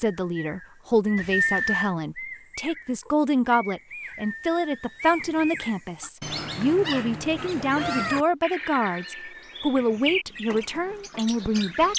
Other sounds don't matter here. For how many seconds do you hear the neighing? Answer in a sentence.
You can hear the neighing for 4 seconds altogether.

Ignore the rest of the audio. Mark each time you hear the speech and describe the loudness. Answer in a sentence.
The speech can be heard from 0.0 to 11.9 s, at a steady volume.